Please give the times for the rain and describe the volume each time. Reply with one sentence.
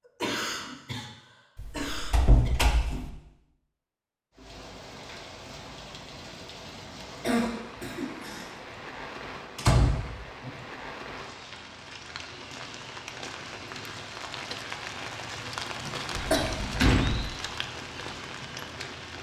The rain can be heard from 4.3 to 19.1 s, getting louder.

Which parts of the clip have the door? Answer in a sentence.
You can hear the door from 1.6 to 3.1 s, from 9.6 to 10.5 s and from 16.1 to 17.2 s.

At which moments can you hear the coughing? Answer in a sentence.
You can hear the coughing from 0.2 to 1.1 s, from 1.7 to 2.5 s, from 7.2 to 8.6 s and from 15.8 to 16.5 s.